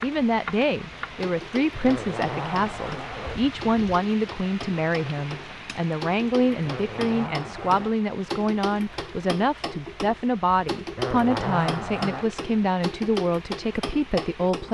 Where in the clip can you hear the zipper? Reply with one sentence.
The zipper can be heard from 1.8 to 3.4 s, from 6.6 to 8.0 s and from 10.9 to 12.2 s.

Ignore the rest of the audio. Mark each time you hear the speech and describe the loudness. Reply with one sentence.
You can hear the speech from 0.0 to 14.7 s, at a steady volume.